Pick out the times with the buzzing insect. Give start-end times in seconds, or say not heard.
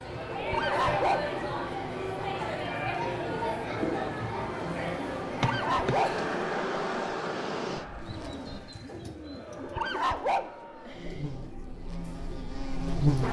3.7-8.8, 10.8-13.2.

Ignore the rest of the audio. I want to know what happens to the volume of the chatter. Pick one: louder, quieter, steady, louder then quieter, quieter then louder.
quieter.